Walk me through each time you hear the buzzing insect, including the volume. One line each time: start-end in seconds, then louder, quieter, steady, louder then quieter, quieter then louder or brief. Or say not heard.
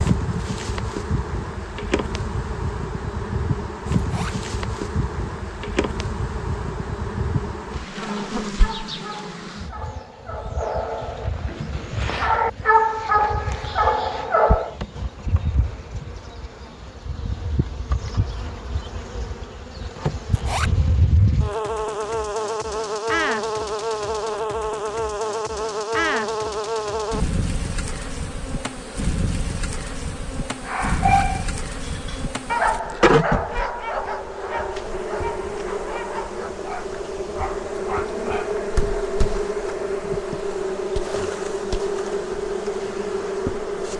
0.0-43.9 quieter then louder.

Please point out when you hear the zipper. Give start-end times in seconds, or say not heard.
4.0-4.4, 20.3-20.8, 30.9-31.3.